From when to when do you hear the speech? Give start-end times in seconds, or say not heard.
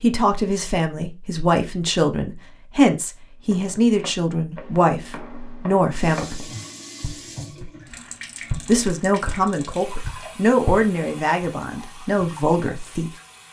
0.0-6.3, 8.7-13.1.